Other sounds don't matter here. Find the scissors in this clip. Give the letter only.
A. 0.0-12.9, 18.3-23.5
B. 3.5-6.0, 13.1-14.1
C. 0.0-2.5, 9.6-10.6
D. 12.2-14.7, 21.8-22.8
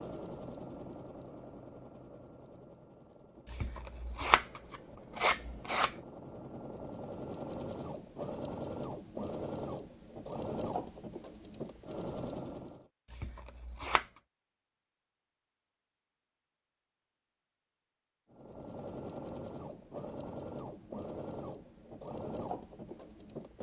B.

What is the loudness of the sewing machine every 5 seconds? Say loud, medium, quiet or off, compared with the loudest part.
medium, loud, loud, loud, loud.